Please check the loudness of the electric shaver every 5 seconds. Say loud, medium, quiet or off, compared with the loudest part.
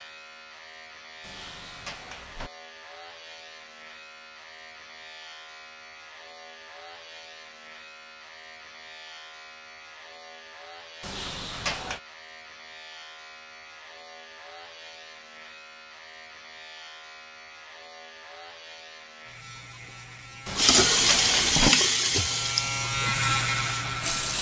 quiet, quiet, quiet, quiet, loud.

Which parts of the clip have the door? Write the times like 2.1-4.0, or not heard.
1.2-2.5, 11.0-12.0, 20.4-21.7.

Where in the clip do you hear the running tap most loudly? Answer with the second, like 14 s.
21 s.